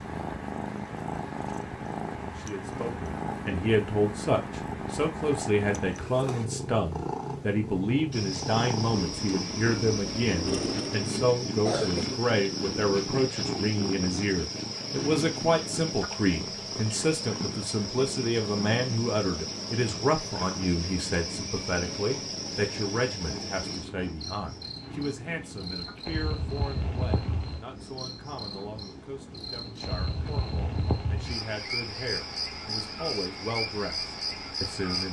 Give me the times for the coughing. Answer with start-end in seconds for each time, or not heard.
10.4-12.2.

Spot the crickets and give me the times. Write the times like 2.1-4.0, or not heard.
8.1-35.0.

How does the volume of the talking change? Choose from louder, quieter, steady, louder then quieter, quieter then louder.
quieter.